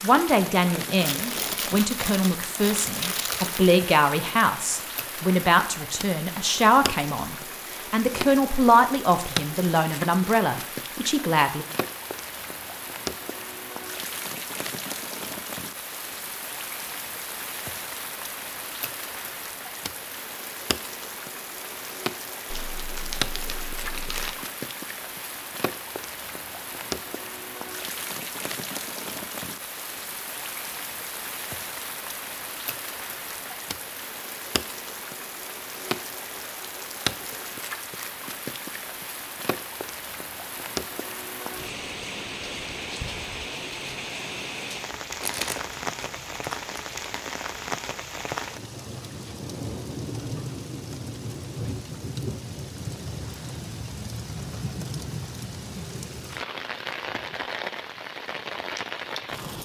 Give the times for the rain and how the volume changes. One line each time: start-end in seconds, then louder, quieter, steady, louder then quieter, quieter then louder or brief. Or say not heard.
0.0-59.5 steady.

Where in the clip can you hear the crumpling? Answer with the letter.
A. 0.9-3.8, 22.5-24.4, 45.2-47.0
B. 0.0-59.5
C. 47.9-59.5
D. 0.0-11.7
A.